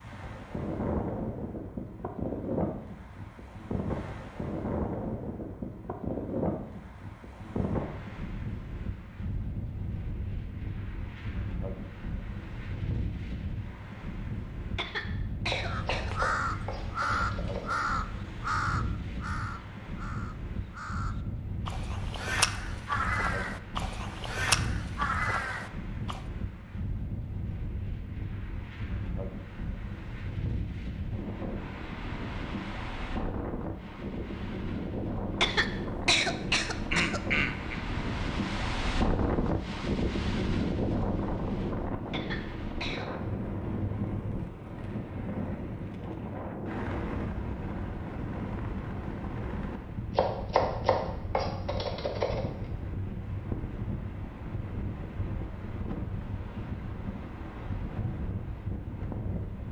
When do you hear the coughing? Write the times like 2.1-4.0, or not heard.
14.8-16.1, 35.4-37.8, 42.1-43.0.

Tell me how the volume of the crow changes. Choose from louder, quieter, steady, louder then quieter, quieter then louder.
quieter then louder.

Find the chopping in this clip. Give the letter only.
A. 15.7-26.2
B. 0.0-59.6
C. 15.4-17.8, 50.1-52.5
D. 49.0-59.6
C.